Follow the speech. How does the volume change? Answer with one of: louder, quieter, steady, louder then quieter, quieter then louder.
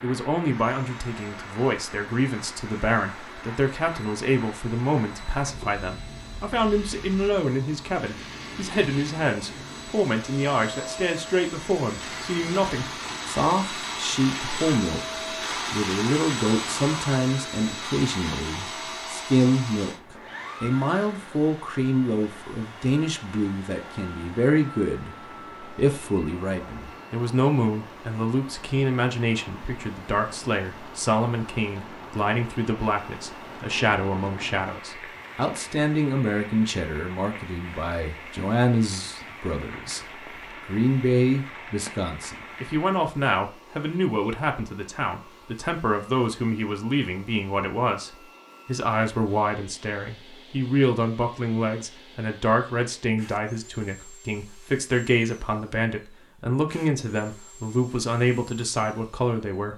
steady.